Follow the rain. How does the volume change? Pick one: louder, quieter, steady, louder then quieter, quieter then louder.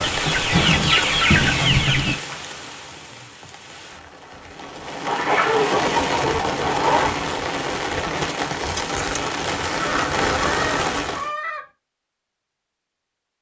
quieter then louder.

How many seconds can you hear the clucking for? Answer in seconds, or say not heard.
6 s.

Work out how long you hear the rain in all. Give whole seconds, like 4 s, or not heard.
11 s.